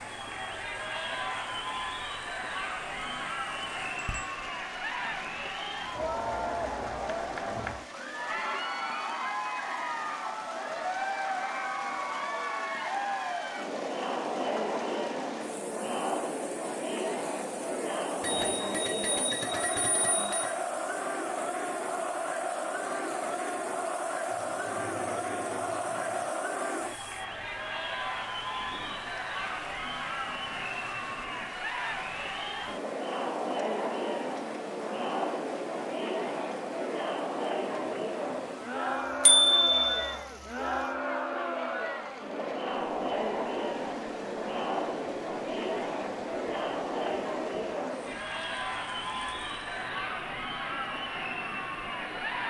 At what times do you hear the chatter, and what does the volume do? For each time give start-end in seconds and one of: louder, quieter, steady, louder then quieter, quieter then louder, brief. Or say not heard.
0.0-52.4 steady.